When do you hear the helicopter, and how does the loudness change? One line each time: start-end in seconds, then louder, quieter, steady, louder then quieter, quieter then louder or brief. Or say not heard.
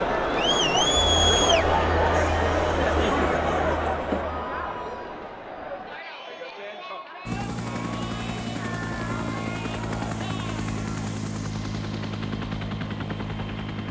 7.2-13.8 steady.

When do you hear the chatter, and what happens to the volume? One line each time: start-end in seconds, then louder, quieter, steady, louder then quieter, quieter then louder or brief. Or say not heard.
0.0-11.2 quieter.